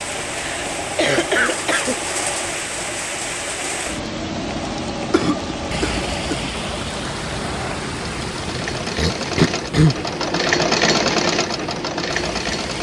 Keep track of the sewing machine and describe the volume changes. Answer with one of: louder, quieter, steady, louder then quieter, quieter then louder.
louder.